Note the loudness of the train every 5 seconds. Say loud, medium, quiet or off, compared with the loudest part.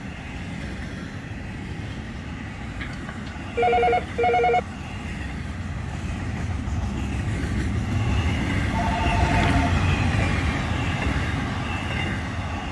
medium, loud, loud.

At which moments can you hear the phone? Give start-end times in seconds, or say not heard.
2.6-4.6, 8.7-9.8.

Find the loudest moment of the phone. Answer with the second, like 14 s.
4 s.